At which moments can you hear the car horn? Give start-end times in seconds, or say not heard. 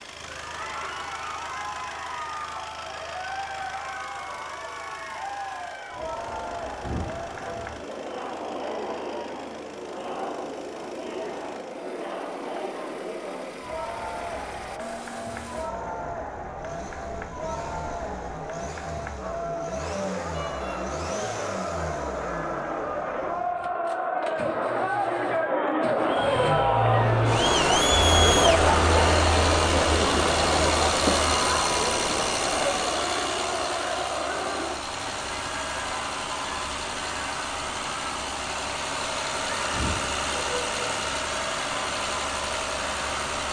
6.8-7.6, 20.3-20.8, 39.7-40.8.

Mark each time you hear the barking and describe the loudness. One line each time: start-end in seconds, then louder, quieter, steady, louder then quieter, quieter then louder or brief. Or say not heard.
not heard.